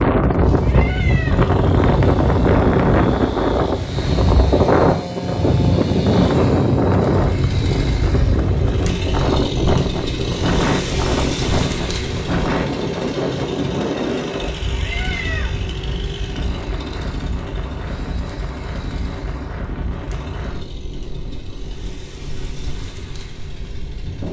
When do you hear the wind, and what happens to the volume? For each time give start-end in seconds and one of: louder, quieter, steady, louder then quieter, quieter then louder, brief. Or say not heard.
0.0-24.2 quieter.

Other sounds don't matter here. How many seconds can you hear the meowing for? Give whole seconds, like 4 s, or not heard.
2 s.